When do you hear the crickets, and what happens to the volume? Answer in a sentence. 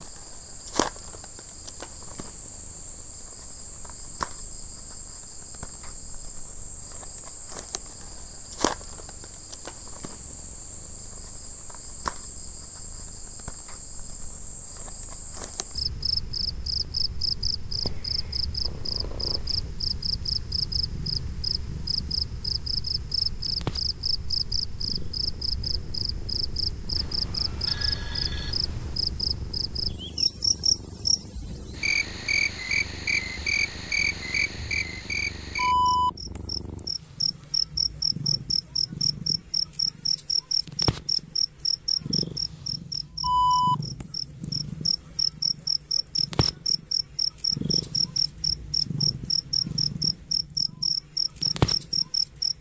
The crickets can be heard from 0.0 to 52.5 s, getting louder.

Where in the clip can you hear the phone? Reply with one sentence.
You can hear the phone from 26.9 to 28.9 s.